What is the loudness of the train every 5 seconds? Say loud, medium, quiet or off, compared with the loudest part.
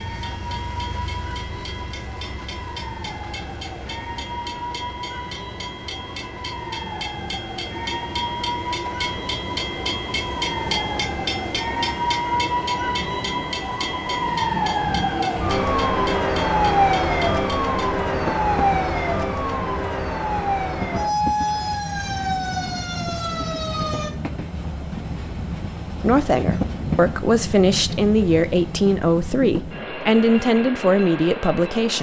medium, loud, loud, medium, loud, loud, loud.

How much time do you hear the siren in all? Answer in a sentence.
The siren can be heard for 24 seconds in total.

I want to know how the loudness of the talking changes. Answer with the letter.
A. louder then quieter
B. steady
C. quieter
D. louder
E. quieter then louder
B.